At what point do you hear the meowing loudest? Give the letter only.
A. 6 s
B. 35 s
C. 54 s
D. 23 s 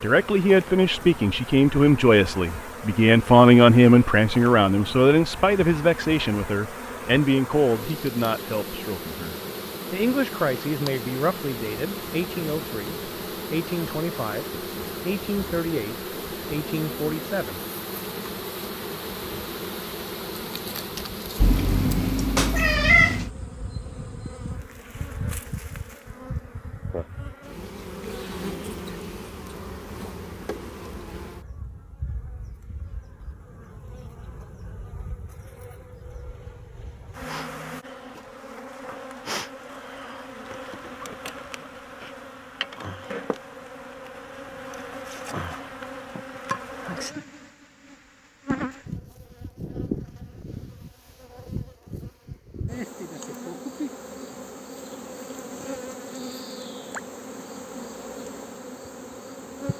D.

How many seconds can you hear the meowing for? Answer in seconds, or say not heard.
2 s.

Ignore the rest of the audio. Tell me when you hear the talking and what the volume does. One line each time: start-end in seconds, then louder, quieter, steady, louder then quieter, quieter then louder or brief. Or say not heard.
0.0-17.6 quieter.